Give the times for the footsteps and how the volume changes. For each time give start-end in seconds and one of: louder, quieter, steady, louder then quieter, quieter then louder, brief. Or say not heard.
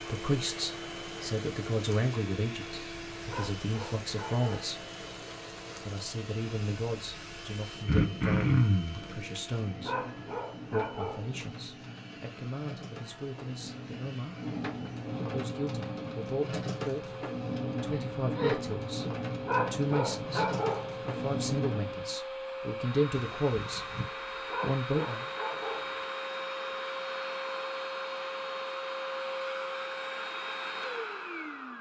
not heard.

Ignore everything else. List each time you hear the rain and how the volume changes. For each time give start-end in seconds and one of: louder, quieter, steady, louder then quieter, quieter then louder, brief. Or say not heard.
0.0-22.1 louder.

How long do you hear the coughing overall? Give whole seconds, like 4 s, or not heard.
3 s.